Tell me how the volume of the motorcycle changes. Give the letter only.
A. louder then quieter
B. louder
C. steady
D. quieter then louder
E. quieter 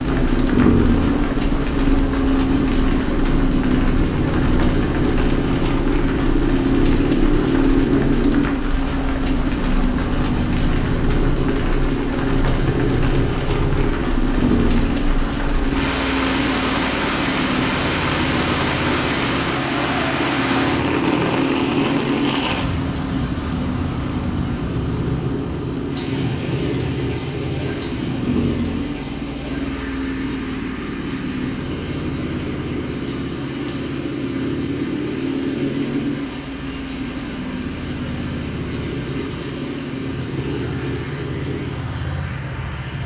E.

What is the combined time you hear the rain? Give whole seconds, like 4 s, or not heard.
43 s.